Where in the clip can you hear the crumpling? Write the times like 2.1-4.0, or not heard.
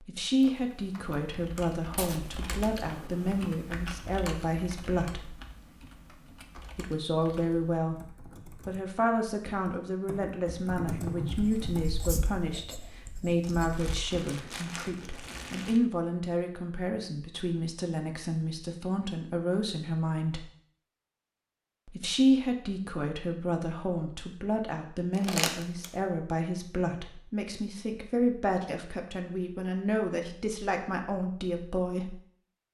1.9-2.5, 13.4-15.8, 25.1-25.9.